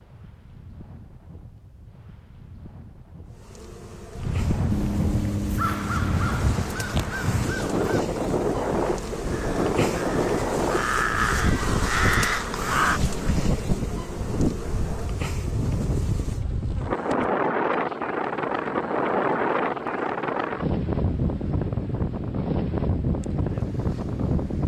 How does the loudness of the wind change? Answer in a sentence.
The volume of the wind goes up.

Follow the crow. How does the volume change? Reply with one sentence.
The loudness of the crow goes down, then up.